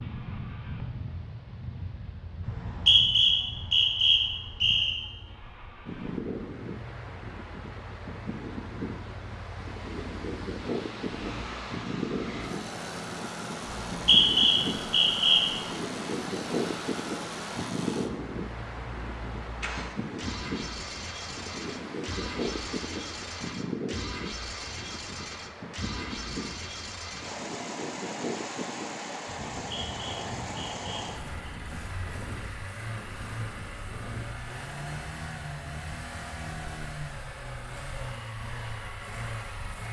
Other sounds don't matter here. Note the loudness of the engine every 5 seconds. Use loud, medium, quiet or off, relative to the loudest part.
quiet, medium, loud, loud, loud, loud, loud, loud.